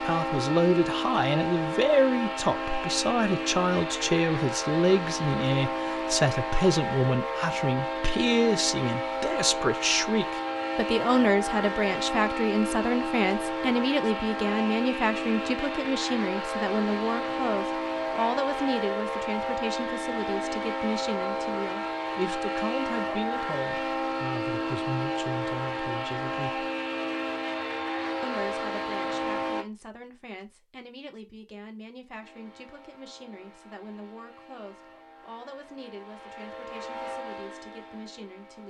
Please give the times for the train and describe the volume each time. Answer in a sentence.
The train can be heard from 0.0 to 29.6 s, at a steady volume; and from 32.2 to 38.6 s, getting louder.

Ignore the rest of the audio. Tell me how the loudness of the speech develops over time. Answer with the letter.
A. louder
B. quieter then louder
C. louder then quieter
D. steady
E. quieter
E.